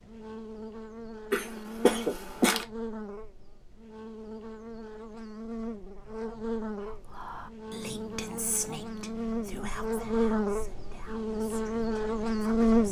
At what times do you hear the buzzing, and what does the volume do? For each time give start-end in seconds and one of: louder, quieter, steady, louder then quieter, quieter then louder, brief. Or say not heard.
0.0-12.8 louder.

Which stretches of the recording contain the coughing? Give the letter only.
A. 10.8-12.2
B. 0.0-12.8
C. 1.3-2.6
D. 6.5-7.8
C.